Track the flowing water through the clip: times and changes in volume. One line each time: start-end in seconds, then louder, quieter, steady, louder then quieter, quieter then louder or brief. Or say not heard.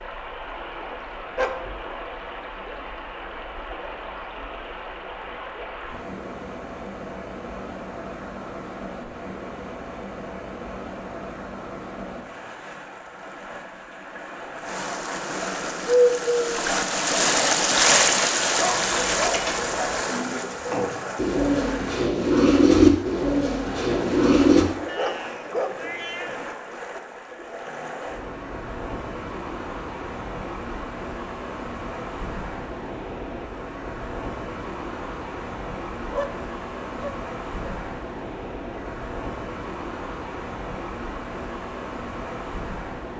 0.0-43.1 louder then quieter.